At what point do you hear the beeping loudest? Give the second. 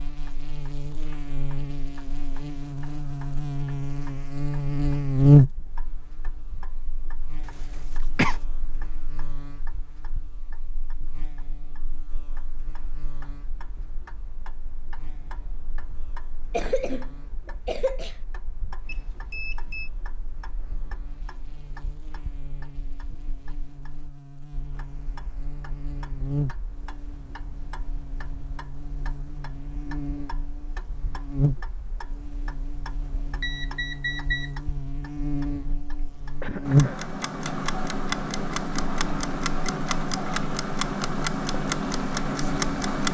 34 s.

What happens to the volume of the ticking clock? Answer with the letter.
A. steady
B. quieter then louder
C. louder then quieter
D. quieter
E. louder
E.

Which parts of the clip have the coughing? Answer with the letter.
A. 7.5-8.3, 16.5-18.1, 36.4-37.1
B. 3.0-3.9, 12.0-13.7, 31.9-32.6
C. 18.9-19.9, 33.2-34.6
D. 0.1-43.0
A.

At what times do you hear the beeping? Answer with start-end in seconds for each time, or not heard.
18.9-19.9, 33.2-34.6.